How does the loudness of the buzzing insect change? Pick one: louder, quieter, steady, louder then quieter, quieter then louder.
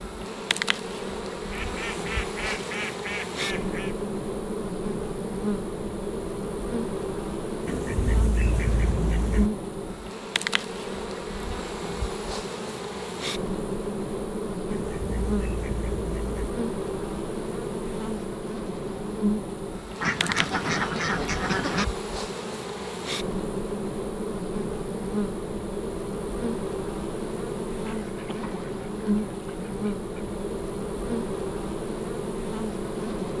steady.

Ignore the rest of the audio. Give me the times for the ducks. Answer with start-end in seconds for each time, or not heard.
1.5-4.0, 7.7-9.5, 14.7-16.5, 20.0-21.9, 27.9-30.4.